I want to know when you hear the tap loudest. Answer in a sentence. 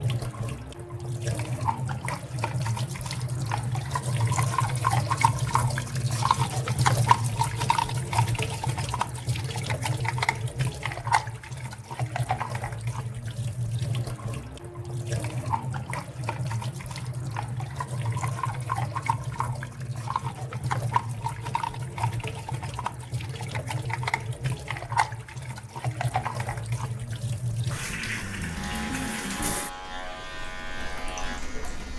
The loudest moment of the tap is at 7 seconds.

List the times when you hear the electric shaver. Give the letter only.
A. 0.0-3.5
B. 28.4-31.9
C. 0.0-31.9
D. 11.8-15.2
B.